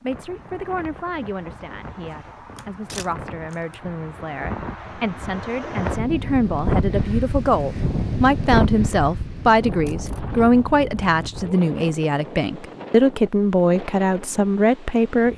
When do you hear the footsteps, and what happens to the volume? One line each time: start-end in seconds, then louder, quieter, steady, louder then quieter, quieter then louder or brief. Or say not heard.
not heard.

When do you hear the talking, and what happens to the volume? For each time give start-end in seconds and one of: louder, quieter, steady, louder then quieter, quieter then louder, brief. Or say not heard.
0.0-15.3 louder.